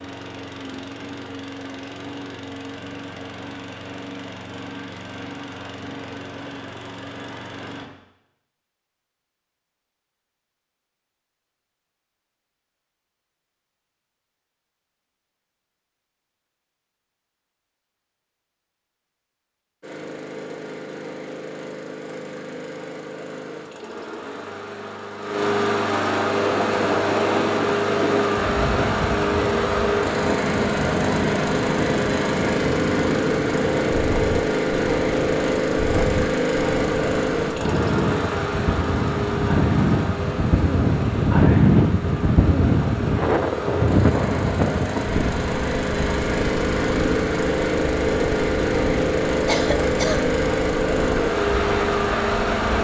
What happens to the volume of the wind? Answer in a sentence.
The volume of the wind goes up, then down.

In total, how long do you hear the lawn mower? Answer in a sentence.
You can hear the lawn mower for 41 seconds altogether.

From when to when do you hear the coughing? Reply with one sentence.
You can hear the coughing from 49.5 to 50.2 s.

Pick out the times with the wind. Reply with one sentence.
You can hear the wind from 26.3 to 52.7 s.